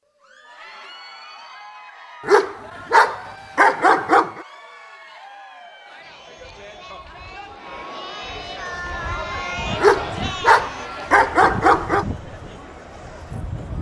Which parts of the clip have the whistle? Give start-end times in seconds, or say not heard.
not heard.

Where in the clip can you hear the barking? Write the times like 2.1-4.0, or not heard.
2.2-4.5, 9.8-12.1.